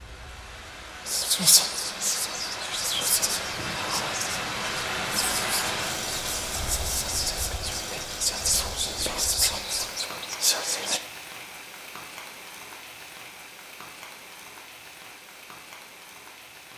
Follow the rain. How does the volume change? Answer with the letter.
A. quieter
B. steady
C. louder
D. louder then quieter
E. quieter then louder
D.